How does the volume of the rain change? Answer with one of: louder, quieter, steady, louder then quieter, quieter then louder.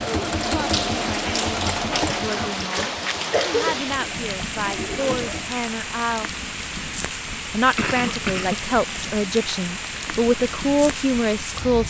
steady.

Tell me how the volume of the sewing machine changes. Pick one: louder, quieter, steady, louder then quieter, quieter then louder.
quieter then louder.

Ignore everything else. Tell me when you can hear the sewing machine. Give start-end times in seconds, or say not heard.
0.0-5.5.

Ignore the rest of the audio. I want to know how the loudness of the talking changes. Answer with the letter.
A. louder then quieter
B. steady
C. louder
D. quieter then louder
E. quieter
C.